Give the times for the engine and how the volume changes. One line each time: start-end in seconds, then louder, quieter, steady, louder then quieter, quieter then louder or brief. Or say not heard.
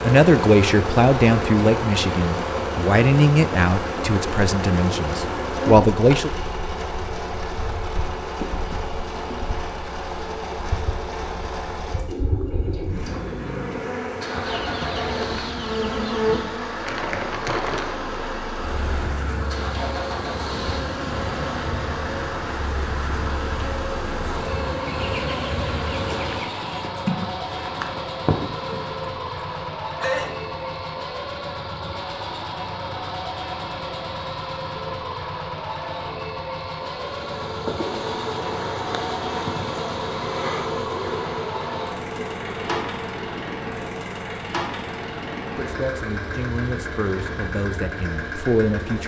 0.0-49.0 steady.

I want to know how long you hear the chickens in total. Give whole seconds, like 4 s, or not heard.
4 s.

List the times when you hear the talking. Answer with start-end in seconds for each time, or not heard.
0.0-6.3, 45.5-49.0.